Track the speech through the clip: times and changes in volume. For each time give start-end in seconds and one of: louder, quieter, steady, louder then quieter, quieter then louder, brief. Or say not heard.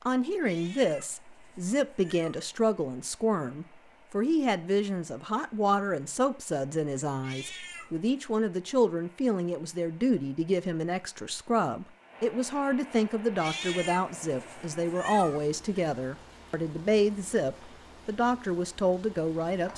0.1-19.7 steady.